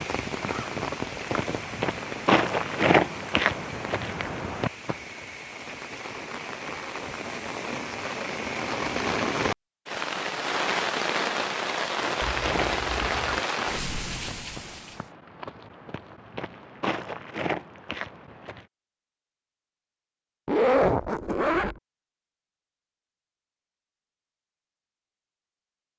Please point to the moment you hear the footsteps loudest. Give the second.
3 s.